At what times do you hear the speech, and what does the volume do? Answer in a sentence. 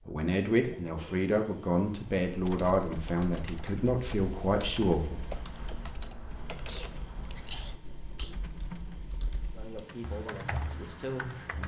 The speech can be heard from 0.1 to 5.2 s, at a steady volume; and briefly from 9.5 to 11.6 s.